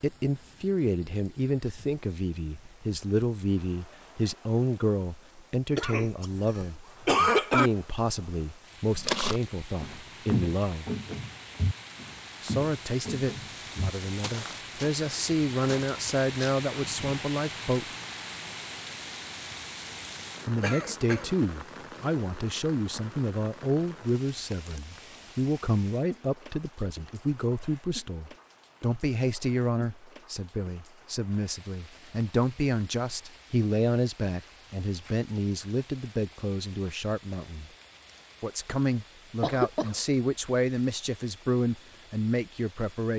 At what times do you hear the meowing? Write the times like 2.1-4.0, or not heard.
not heard.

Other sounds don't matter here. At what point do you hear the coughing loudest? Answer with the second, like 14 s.
7 s.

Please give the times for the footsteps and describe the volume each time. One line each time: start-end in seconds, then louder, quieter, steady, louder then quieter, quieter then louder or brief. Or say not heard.
8.9-16.6 quieter.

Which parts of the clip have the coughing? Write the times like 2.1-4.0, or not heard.
5.8-7.7, 20.6-21.3, 39.4-40.0.